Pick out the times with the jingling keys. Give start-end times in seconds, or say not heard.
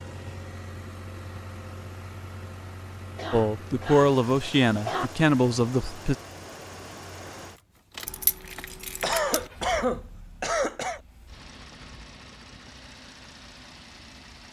8.1-9.5.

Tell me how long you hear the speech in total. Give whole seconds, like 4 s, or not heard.
3 s.